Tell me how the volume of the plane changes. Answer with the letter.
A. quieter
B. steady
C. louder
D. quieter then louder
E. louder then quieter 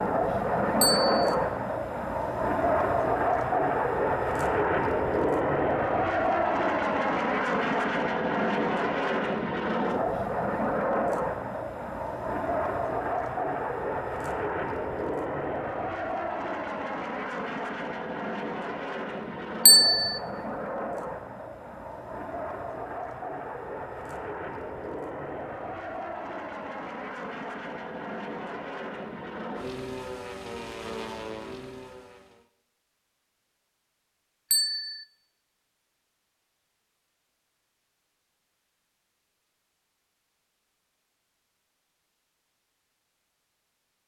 A.